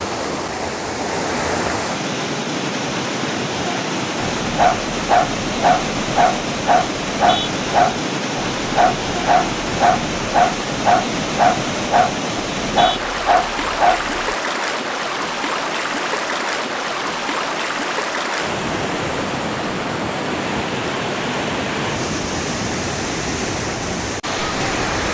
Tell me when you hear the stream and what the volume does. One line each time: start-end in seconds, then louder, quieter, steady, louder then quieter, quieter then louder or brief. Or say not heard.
0.0-25.0 steady.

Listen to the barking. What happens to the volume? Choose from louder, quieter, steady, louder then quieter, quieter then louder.
steady.